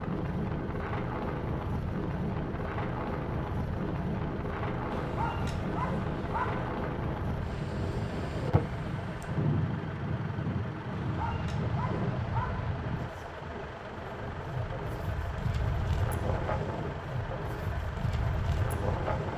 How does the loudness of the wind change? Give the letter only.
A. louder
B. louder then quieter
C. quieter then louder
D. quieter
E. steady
E.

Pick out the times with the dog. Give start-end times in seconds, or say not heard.
4.9-6.7, 10.9-12.7.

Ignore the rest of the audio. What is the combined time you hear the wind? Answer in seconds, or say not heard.
19 s.